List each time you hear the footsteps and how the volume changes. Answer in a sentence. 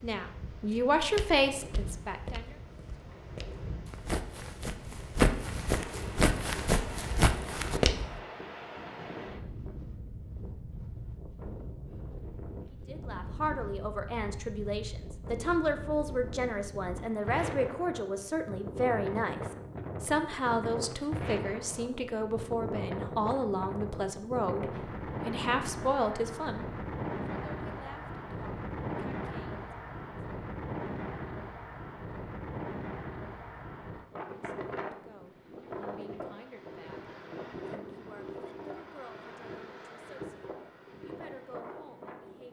The footsteps can be heard from 0.7 to 8.2 s, getting quieter then louder.